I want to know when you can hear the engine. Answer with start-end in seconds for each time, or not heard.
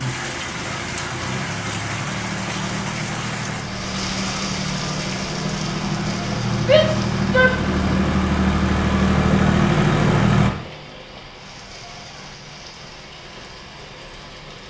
0.0-10.5.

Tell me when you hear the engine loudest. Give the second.
10 s.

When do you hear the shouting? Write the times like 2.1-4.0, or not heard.
6.6-7.5.